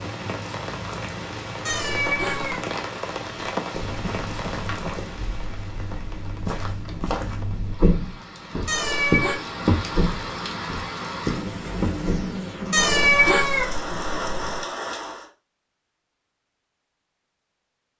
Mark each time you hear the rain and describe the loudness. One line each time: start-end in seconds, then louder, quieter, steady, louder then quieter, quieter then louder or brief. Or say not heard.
0.0-15.3 quieter then louder.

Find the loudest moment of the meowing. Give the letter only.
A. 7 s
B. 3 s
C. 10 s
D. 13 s
D.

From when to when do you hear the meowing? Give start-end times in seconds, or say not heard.
1.6-2.6, 8.7-9.3, 12.7-14.6.